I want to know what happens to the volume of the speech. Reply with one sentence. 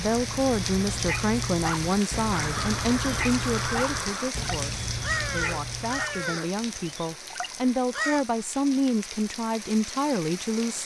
The volume of the speech goes down, then up.